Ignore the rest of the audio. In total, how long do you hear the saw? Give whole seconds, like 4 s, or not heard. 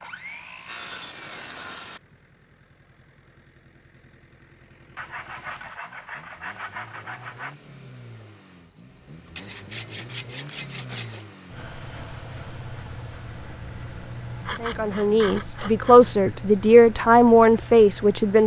8 s.